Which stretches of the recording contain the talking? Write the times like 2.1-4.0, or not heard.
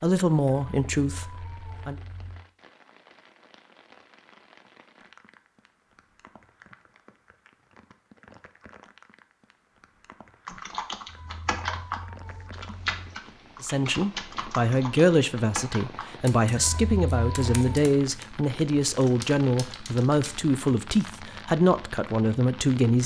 0.0-1.9, 13.6-23.0.